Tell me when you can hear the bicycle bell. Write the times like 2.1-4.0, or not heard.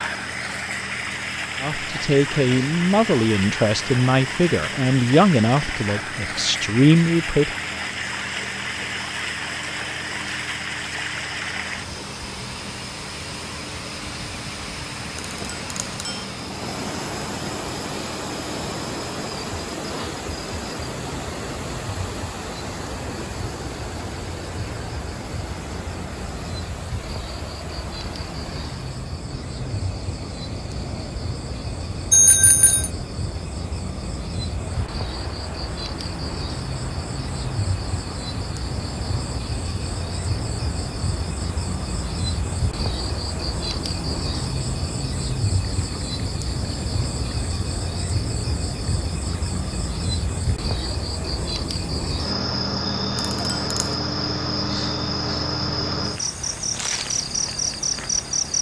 15.2-16.3, 32.1-32.9, 53.1-54.0.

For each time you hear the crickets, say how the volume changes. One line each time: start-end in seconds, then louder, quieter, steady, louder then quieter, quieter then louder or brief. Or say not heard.
0.0-58.5 louder.